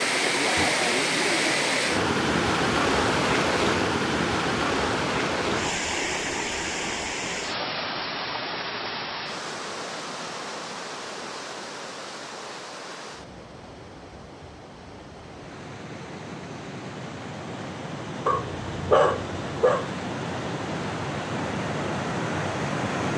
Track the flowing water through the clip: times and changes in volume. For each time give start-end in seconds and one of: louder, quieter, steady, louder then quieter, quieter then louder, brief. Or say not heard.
0.0-23.1 quieter then louder.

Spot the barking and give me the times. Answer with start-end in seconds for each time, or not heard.
18.2-19.9.